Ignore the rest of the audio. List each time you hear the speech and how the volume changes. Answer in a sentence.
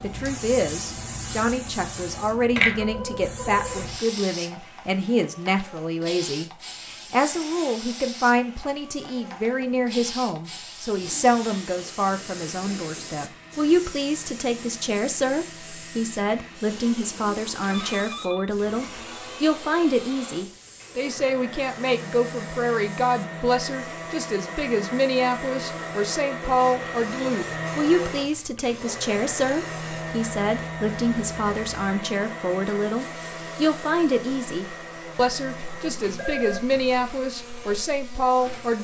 The speech can be heard from 0.0 to 38.7 s, at a steady volume.